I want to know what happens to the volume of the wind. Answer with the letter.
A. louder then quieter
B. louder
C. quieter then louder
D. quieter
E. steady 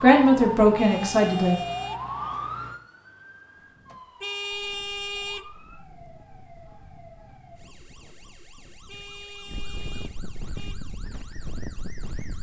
B.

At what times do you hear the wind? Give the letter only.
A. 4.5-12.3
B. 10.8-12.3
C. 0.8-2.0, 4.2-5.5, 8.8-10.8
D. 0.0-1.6
A.